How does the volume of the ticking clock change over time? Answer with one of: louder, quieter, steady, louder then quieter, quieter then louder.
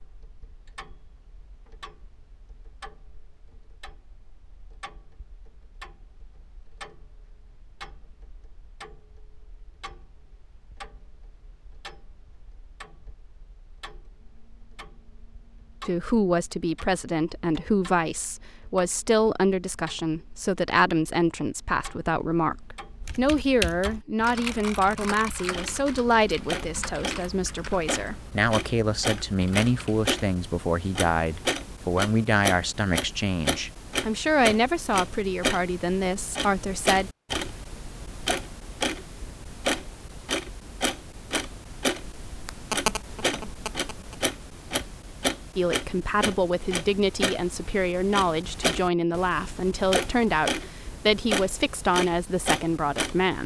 louder.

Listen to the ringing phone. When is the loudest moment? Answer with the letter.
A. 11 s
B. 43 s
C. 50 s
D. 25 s
B.